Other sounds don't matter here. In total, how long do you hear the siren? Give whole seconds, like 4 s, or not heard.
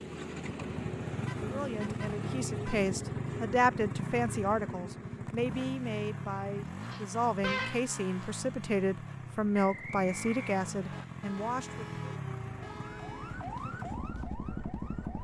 3 s.